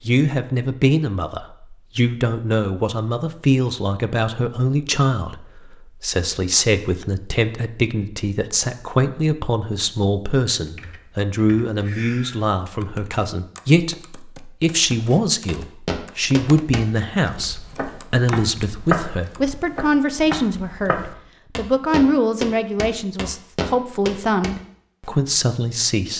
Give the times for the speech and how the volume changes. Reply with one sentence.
You can hear the speech from 0.1 to 26.1 s, at a steady volume.